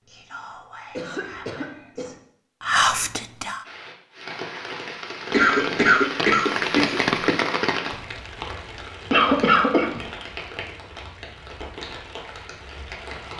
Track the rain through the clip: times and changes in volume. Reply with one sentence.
You can hear the rain from 3.6 to 13.3 s, getting louder then quieter.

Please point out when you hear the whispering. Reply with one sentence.
The whispering can be heard from 0.0 to 3.6 s.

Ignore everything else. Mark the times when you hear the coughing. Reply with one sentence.
You can hear the coughing from 0.9 to 2.1 s, from 5.3 to 7.3 s and from 9.1 to 10.0 s.